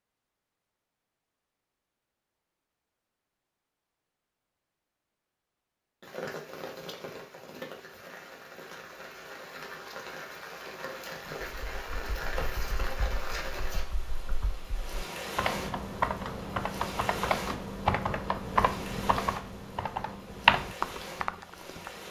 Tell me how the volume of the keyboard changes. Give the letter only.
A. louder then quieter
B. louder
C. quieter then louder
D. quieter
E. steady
B.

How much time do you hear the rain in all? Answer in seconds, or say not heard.
16 s.